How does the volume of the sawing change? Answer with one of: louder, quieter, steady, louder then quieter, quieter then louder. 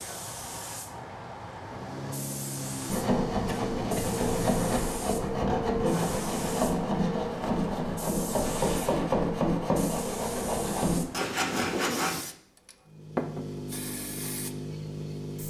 steady.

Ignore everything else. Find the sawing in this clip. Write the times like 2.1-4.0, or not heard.
2.9-12.2.